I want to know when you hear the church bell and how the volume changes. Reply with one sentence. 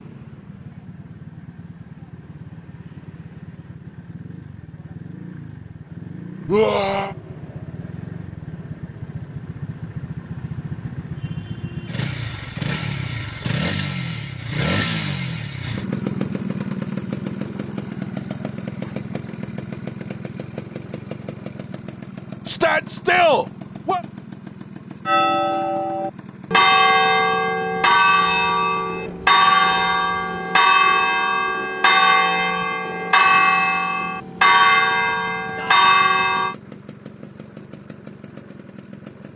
The church bell can be heard from 25.1 to 36.5 s, at a steady volume.